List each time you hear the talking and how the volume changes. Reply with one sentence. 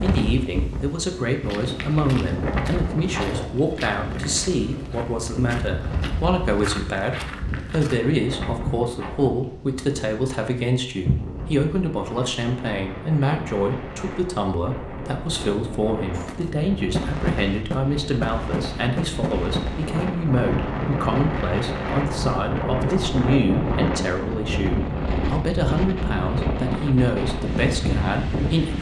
You can hear the talking from 0.0 to 28.7 s, at a steady volume.